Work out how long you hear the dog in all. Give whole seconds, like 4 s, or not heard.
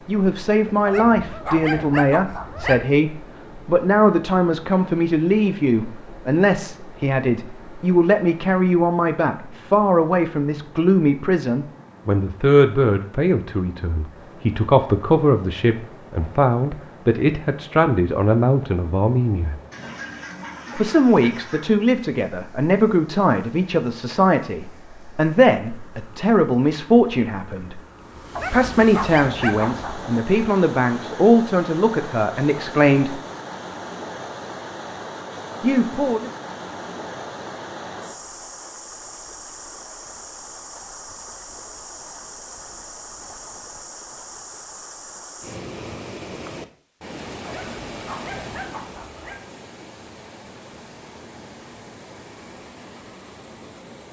6 s.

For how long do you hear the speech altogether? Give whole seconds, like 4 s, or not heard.
32 s.